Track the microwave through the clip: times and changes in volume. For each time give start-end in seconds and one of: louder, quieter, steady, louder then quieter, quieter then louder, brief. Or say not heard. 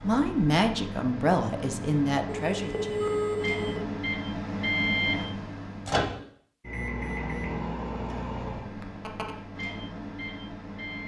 0.0-11.0 louder then quieter.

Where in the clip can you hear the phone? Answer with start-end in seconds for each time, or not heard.
2.2-3.8, 8.8-9.3.